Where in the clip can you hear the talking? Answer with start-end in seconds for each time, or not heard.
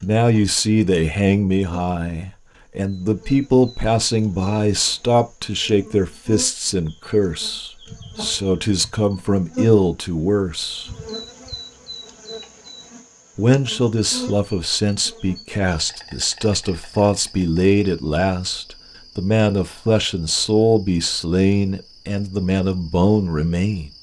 0.0-10.9, 13.3-23.9.